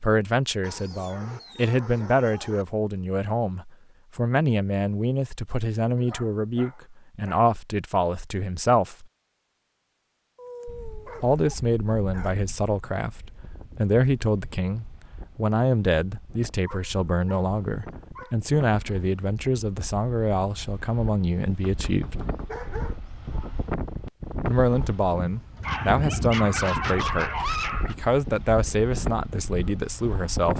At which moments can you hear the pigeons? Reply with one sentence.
The pigeons can't be heard in this clip.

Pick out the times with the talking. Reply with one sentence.
You can hear the talking from 0.0 to 9.1 s, from 11.2 to 22.2 s and from 24.4 to 30.5 s.